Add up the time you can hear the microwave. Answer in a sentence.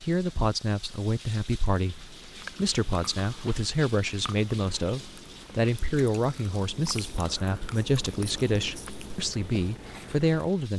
The microwave can't be heard in this clip.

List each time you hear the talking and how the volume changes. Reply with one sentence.
You can hear the talking from 0.0 to 10.7 s, at a steady volume.